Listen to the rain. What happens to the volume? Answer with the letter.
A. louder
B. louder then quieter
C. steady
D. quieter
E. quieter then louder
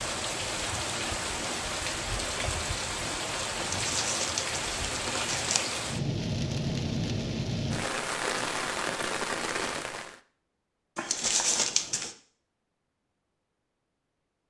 C.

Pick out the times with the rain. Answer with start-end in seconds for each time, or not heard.
0.0-10.2.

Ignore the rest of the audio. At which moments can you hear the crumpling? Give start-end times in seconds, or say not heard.
3.6-5.6, 10.9-12.2.